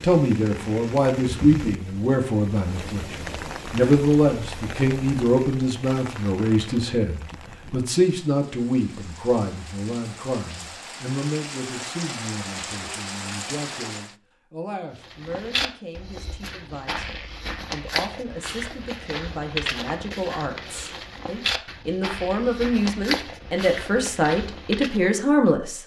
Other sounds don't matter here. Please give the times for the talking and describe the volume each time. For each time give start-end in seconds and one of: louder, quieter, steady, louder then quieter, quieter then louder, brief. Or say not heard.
0.0-25.8 quieter then louder.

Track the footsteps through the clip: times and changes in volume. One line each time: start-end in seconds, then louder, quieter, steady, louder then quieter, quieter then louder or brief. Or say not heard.
15.0-25.1 steady.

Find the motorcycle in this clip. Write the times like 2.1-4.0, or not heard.
not heard.